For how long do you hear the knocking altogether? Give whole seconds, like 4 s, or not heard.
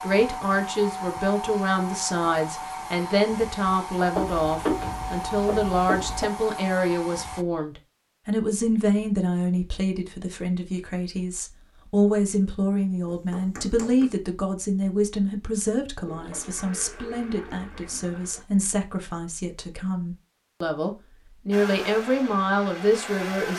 3 s.